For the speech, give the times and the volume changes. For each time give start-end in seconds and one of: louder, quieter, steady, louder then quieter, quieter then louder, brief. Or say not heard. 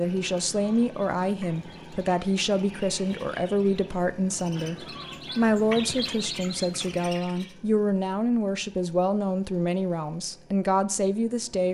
0.0-11.6 steady.